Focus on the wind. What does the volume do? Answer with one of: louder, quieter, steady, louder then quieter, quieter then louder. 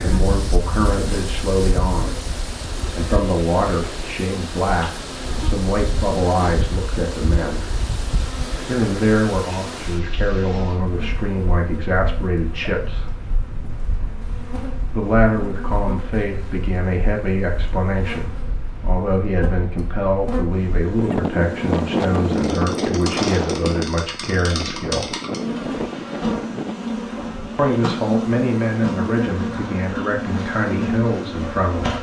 quieter then louder.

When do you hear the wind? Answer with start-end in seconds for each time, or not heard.
0.0-26.8.